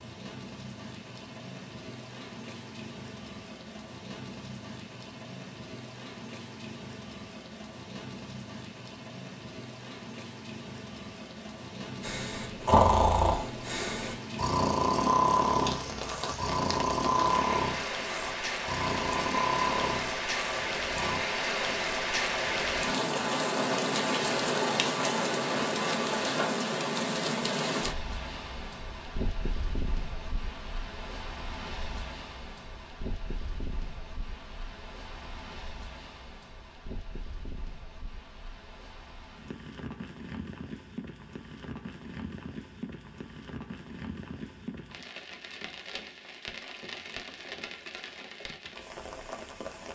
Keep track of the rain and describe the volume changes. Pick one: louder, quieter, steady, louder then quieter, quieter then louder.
louder then quieter.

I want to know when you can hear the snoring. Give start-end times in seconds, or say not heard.
12.0-21.2.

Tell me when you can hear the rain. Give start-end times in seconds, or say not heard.
0.0-49.9.